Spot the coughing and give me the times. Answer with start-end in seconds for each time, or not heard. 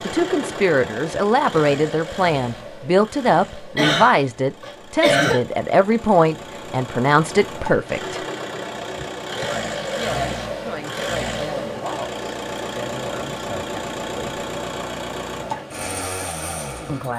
3.8-5.4.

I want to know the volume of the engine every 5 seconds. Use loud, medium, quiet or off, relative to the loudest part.
medium, loud, loud, loud.